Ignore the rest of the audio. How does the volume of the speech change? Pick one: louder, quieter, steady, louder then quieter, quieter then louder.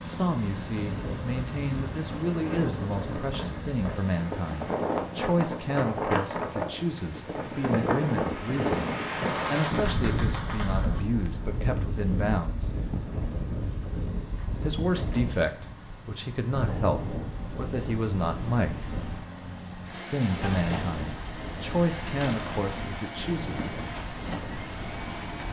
steady.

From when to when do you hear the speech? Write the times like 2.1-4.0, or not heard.
0.0-12.8, 14.6-18.9, 19.9-23.6.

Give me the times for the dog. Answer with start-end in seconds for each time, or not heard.
not heard.